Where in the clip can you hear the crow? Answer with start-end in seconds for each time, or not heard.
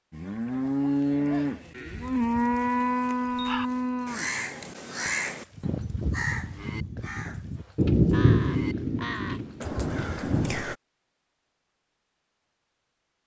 3.2-10.8.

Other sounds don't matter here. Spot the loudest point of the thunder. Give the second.
8 s.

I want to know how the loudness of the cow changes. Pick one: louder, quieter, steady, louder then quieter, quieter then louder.
quieter.